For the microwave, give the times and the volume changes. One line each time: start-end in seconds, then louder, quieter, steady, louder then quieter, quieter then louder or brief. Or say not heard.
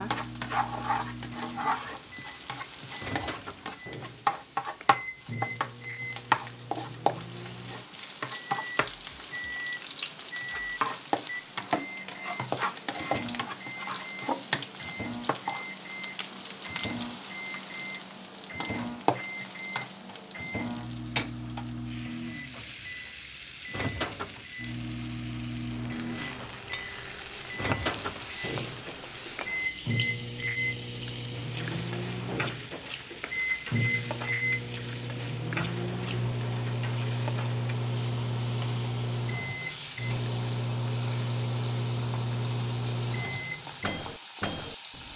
0.0-45.1 louder.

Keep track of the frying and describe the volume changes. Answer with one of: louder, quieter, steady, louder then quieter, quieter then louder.
quieter.